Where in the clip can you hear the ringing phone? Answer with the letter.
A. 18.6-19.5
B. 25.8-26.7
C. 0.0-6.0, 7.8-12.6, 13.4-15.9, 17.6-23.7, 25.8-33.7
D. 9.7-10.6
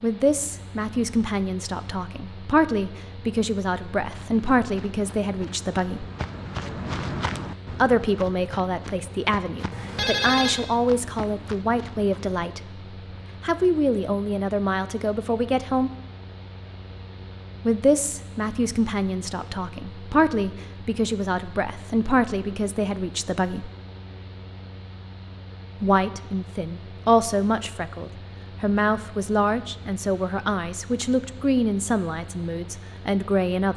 D.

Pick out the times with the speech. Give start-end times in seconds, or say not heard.
0.0-6.0, 7.8-12.6, 13.4-15.9, 17.6-23.7, 25.8-33.7.